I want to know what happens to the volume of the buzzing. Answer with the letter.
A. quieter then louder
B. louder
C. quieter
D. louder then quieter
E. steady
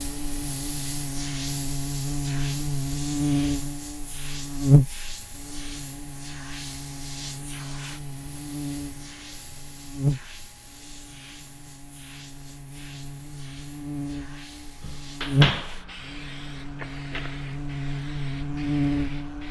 A.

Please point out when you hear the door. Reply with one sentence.
The door can be heard from 14.8 to 15.8 s.